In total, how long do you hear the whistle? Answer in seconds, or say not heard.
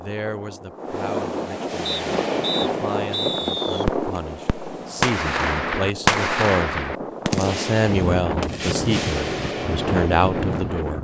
2 s.